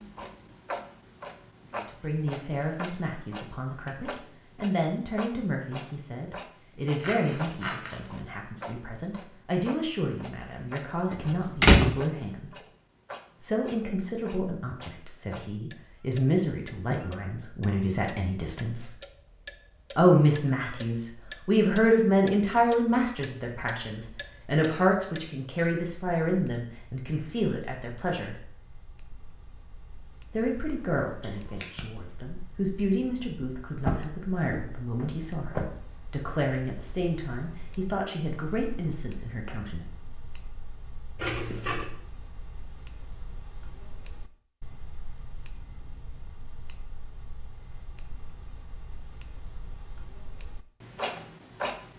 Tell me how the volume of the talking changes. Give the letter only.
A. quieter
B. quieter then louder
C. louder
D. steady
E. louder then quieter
E.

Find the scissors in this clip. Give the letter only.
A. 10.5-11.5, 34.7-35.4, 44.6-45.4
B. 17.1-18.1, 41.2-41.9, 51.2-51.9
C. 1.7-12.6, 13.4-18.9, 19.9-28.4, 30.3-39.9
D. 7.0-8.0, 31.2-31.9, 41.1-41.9
D.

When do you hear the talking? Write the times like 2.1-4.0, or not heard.
1.7-12.6, 13.4-18.9, 19.9-28.4, 30.3-39.9.